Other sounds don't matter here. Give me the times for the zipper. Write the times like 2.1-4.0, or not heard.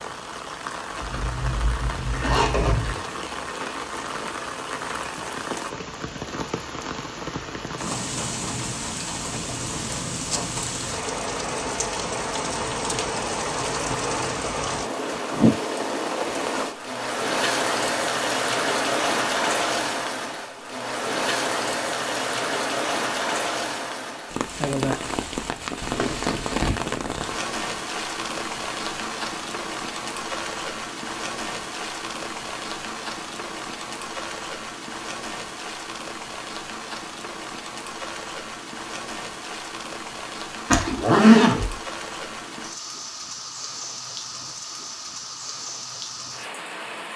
1.0-3.0, 25.8-26.8, 40.7-41.8.